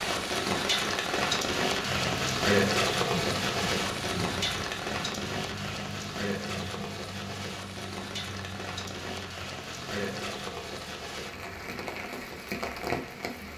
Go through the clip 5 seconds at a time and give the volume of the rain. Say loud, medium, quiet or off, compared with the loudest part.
loud, medium, medium.